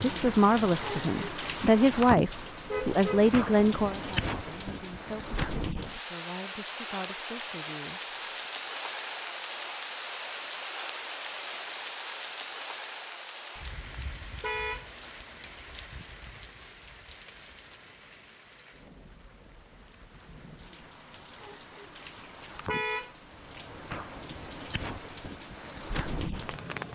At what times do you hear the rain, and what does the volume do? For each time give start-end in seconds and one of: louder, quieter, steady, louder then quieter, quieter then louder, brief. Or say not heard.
0.0-26.9 quieter then louder.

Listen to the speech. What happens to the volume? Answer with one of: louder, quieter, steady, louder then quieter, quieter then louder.
quieter.